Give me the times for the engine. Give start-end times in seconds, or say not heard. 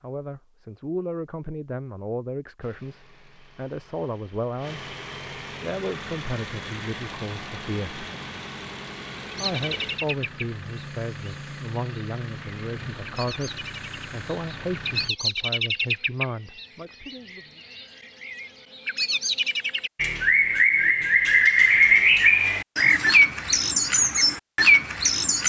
2.6-15.1.